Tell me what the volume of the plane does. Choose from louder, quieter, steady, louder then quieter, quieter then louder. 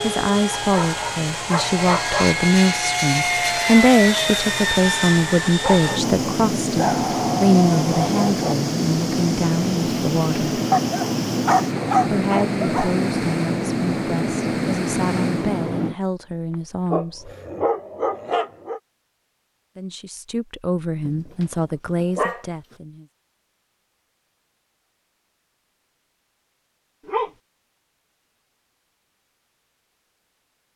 steady.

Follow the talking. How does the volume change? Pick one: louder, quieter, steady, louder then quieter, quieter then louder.
quieter.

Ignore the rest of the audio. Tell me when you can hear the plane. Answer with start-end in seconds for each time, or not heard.
0.0-15.9.